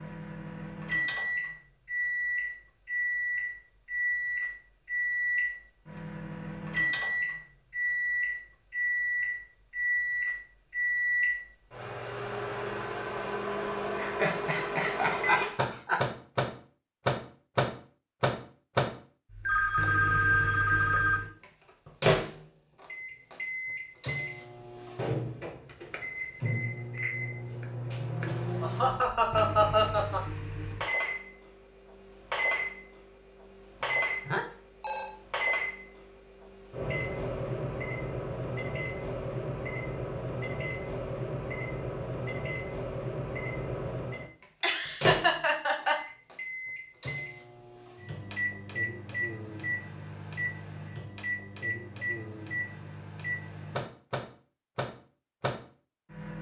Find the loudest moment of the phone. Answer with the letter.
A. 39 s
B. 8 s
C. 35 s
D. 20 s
D.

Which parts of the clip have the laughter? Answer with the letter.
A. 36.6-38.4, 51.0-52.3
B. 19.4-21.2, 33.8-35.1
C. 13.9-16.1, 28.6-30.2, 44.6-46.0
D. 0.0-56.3
C.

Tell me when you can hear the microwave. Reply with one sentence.
You can hear the microwave from 0.0 to 56.3 s.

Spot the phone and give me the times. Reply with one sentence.
You can hear the phone from 19.4 to 21.2 s and from 33.8 to 35.1 s.